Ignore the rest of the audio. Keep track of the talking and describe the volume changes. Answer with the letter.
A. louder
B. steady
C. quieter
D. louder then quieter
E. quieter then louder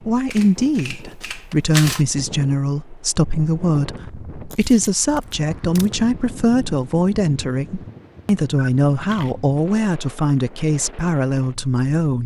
B.